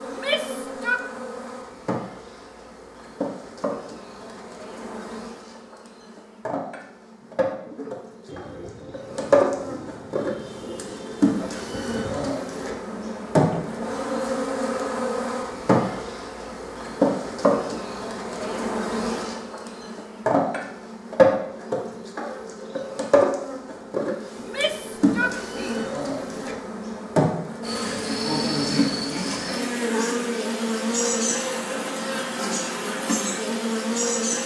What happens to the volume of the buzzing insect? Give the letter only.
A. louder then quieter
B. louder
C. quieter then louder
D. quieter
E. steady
B.